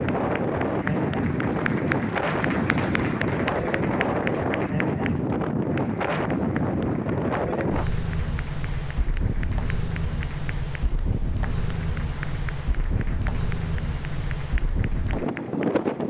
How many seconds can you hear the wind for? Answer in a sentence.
You can hear the wind for 16 seconds altogether.